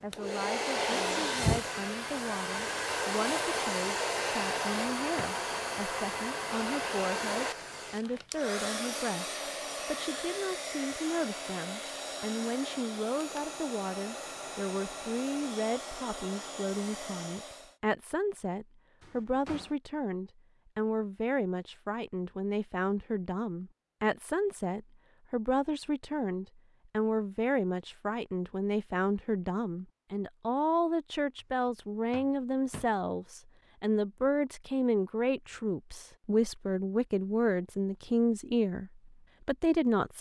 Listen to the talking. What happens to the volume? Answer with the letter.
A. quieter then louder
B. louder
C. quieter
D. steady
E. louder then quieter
B.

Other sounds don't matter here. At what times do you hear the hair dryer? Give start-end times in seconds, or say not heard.
0.1-17.8.